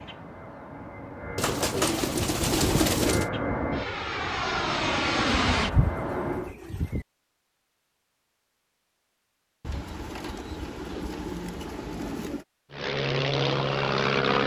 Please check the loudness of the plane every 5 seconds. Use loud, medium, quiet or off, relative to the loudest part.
medium, loud, loud.